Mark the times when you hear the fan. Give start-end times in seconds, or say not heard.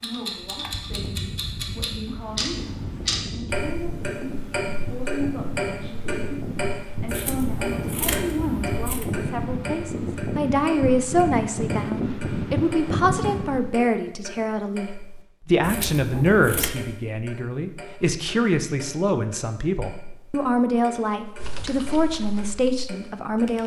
0.0-13.8.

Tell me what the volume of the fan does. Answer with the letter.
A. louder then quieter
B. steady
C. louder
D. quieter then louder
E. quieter
C.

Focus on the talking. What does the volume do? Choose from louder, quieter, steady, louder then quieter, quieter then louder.
louder.